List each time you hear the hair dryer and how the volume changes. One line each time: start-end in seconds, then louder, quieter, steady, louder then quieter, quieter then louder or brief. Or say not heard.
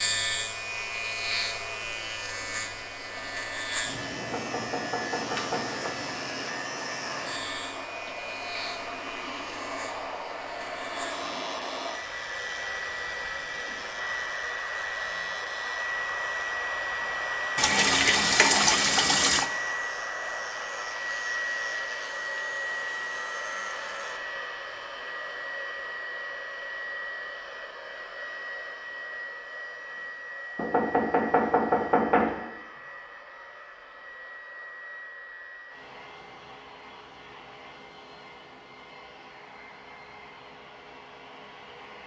0.0-42.0 louder then quieter.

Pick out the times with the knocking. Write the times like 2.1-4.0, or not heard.
4.2-5.8, 30.6-32.4.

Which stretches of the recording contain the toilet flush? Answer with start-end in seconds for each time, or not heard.
17.6-19.4.